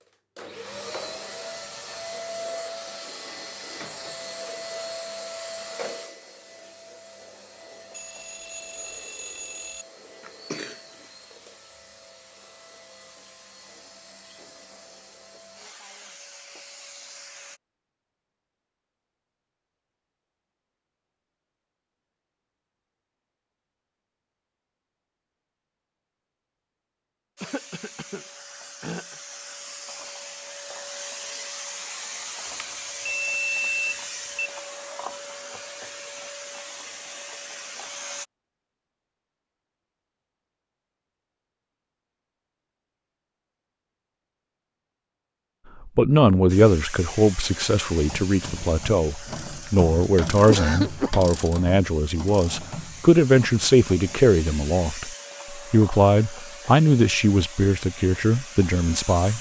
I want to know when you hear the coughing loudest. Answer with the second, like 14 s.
51 s.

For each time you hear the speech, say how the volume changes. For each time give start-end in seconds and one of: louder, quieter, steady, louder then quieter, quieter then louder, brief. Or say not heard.
45.9-59.3 steady.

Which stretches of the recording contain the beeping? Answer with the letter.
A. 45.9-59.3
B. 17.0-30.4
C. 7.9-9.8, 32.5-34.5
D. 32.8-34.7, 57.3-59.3
C.